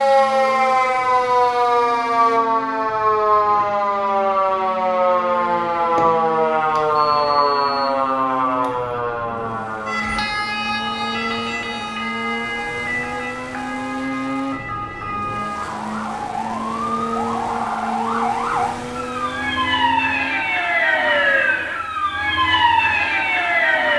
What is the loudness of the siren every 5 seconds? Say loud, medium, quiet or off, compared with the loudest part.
loud, loud, medium, medium, loud.